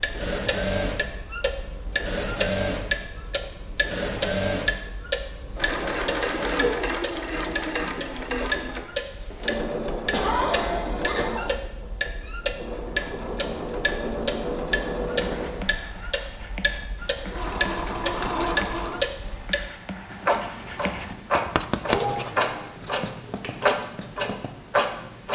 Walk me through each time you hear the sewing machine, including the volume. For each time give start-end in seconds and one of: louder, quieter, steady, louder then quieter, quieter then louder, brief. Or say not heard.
0.0-15.7 steady
17.2-19.1 brief.